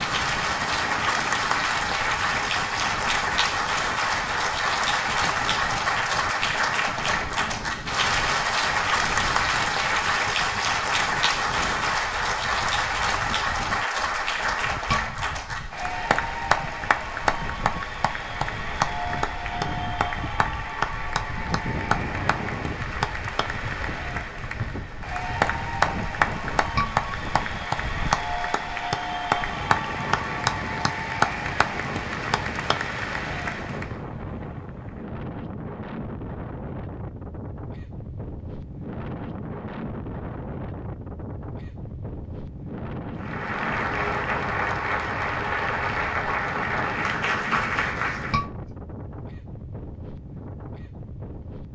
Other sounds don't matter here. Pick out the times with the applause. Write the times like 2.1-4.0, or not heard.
0.0-34.0, 43.2-48.4.